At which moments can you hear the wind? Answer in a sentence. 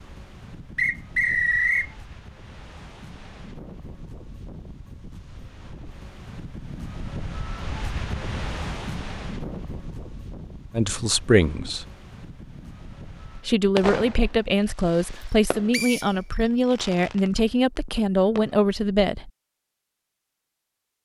You can hear the wind from 0.0 to 13.5 s.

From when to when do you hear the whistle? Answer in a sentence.
You can hear the whistle from 0.8 to 1.9 s and from 15.7 to 16.4 s.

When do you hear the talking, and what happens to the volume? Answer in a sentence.
You can hear the talking briefly from 10.7 to 11.8 s; and from 13.3 to 19.3 s, at a steady volume.